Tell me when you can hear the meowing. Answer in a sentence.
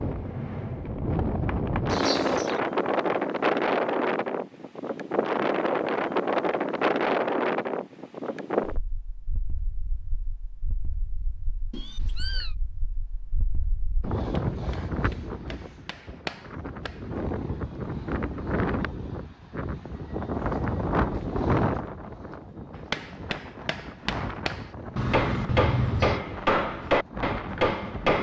The meowing can be heard from 1.9 to 2.6 s, from 11.7 to 12.6 s and from 24.9 to 26.2 s.